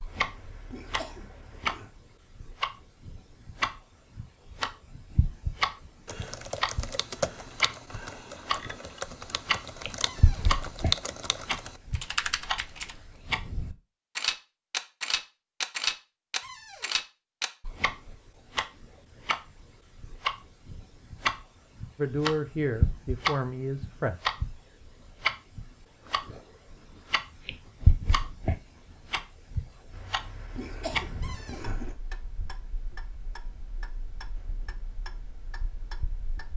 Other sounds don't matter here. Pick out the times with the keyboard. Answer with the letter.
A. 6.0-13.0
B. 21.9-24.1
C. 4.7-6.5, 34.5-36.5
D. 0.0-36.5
A.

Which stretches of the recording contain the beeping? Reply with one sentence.
The beeping can't be heard in this clip.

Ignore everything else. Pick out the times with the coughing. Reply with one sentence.
The coughing can be heard from 0.1 to 1.9 s and from 29.9 to 31.9 s.